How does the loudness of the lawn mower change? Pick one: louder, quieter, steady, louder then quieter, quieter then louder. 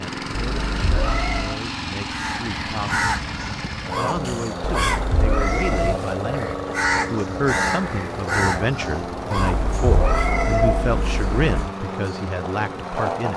steady.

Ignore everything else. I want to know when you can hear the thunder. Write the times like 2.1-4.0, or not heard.
not heard.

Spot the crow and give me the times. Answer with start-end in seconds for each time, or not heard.
2.1-10.3.